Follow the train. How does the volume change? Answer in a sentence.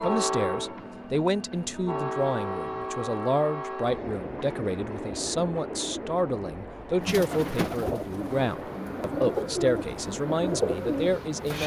The loudness of the train goes down.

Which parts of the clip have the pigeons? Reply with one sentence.
You can hear the pigeons from 7.0 to 11.6 s.